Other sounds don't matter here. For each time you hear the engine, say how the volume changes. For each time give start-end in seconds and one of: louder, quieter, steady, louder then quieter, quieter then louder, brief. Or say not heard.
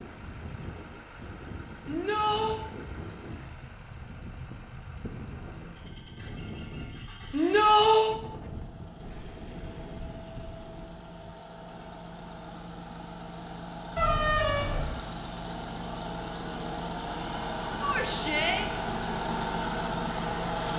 0.0-20.7 louder.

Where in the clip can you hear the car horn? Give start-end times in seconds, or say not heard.
13.9-14.9.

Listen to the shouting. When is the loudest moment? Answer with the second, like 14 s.
8 s.